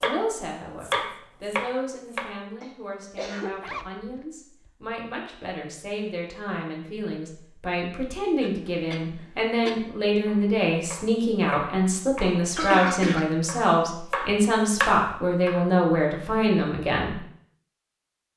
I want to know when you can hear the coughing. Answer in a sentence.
The coughing can be heard from 2.6 to 3.5 s, from 8.4 to 9.9 s and from 12.6 to 13.3 s.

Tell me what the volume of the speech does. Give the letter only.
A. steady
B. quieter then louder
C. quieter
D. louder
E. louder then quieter
D.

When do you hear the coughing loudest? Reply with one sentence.
The volume of the coughing peaks at 13 seconds.